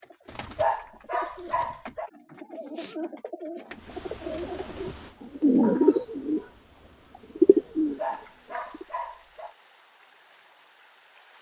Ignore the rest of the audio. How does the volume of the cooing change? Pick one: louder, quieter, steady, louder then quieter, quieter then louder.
louder.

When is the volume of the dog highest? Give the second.
1 s.